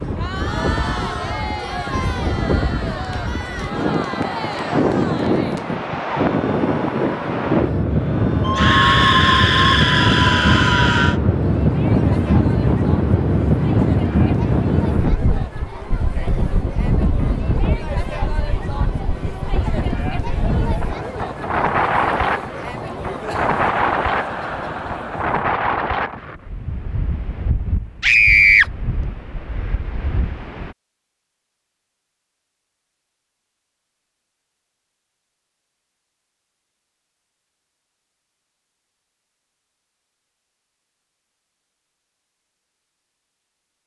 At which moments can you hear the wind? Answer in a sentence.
The wind can be heard from 0.0 to 30.8 s.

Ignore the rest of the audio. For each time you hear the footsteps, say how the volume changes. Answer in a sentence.
You can't hear the footsteps here.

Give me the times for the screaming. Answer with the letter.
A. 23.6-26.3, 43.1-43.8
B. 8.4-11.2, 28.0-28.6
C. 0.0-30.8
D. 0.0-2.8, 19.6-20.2
B.